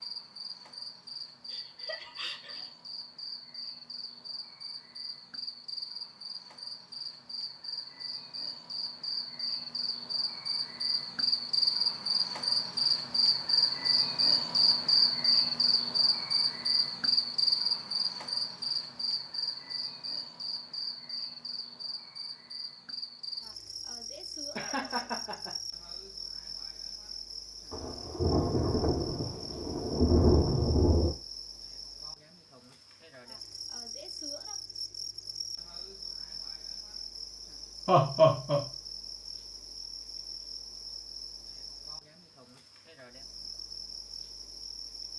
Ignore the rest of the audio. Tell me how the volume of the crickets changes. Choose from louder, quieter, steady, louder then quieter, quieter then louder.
louder then quieter.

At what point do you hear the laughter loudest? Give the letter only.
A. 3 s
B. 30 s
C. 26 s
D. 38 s
D.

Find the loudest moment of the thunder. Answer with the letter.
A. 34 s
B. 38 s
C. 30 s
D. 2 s
C.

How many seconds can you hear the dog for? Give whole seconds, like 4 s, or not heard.
not heard.